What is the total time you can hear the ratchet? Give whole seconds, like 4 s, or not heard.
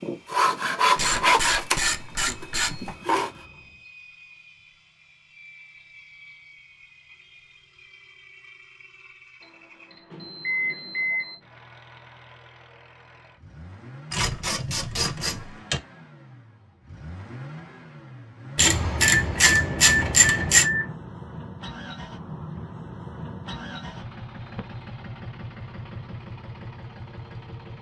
6 s.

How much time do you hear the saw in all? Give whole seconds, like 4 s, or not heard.
3 s.